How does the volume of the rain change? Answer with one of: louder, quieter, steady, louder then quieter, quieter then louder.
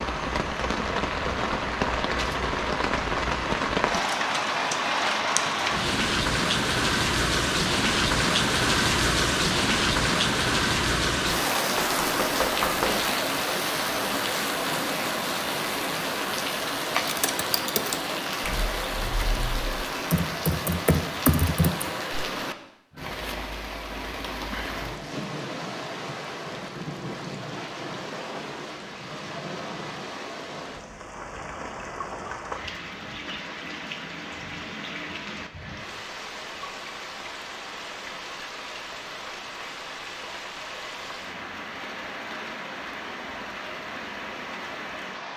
quieter.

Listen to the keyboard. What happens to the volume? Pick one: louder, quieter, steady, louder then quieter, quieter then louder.
quieter then louder.